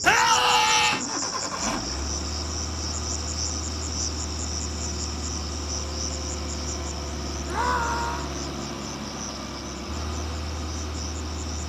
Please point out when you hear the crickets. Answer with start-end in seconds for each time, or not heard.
0.0-11.6.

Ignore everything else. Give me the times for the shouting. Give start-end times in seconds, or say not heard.
0.0-1.0, 7.5-8.3.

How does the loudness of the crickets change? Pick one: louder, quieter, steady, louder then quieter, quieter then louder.
quieter.